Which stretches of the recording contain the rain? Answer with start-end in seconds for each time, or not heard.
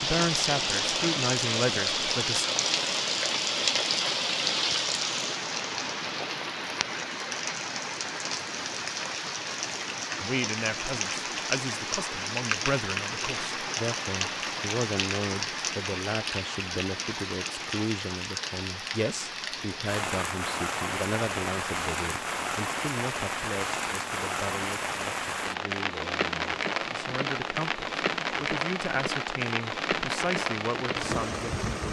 0.0-31.8.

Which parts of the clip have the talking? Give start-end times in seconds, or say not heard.
0.0-2.5, 10.2-31.8.